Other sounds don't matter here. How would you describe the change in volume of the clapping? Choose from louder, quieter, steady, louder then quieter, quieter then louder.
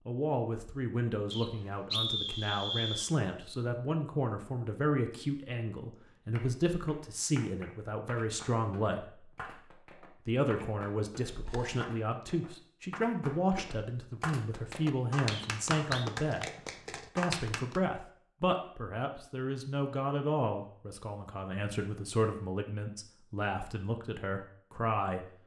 louder.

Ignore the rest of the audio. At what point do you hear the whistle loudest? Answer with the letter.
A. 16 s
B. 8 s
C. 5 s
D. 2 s
D.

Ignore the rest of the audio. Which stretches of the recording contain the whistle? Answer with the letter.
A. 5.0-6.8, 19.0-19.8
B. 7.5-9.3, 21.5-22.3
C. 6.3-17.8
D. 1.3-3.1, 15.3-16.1
D.